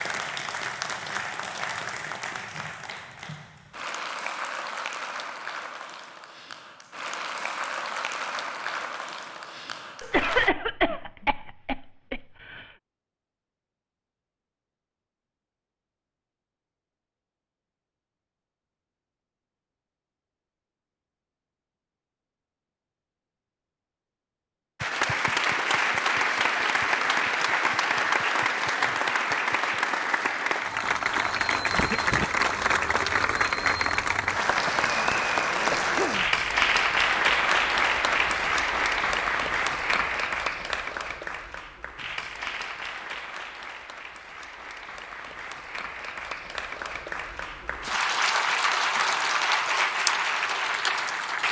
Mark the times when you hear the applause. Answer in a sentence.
You can hear the applause from 0.0 to 10.5 s and from 24.8 to 51.4 s.